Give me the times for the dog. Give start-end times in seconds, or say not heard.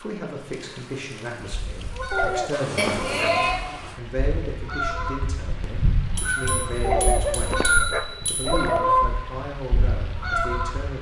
2.1-3.4, 6.8-8.9.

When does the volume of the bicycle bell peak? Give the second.
3 s.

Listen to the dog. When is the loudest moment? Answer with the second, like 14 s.
7 s.